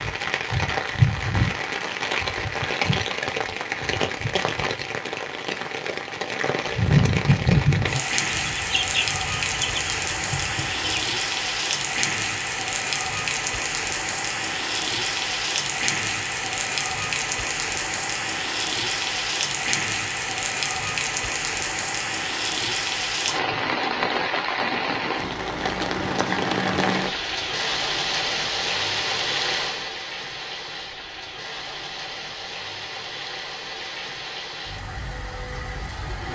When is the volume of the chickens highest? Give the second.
9 s.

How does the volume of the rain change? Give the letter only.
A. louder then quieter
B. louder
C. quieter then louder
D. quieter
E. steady
D.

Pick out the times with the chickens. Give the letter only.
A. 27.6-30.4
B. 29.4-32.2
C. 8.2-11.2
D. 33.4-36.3
C.